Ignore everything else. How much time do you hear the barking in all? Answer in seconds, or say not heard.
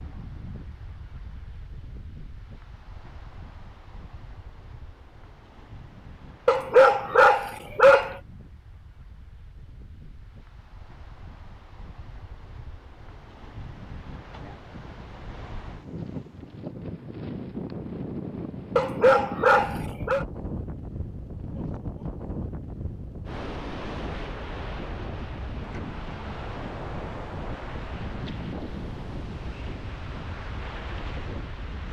3 s.